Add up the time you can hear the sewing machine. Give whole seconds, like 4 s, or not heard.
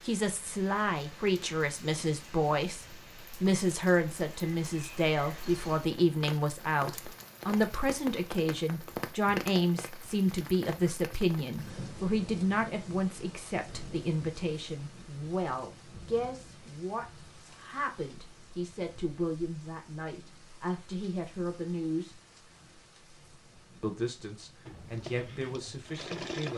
2 s.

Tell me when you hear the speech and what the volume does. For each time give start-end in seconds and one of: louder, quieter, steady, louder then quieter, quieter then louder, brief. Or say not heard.
0.1-22.1 quieter
23.8-26.5 brief.